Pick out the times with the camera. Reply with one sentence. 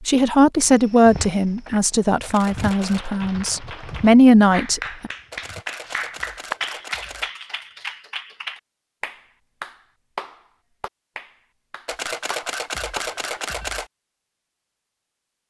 You can hear the camera from 2.2 to 3.1 s, from 5.3 to 7.3 s and from 11.8 to 13.9 s.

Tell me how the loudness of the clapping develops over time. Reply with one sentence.
The loudness of the clapping goes up, then down.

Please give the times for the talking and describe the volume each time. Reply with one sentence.
You can hear the talking from 0.1 to 5.1 s, getting quieter then louder.